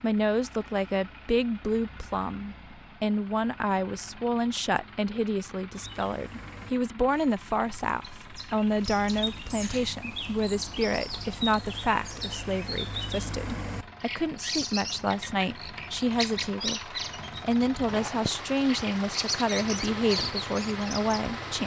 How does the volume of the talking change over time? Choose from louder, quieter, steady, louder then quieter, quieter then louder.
steady.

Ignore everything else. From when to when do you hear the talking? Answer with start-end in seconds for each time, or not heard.
0.0-21.6.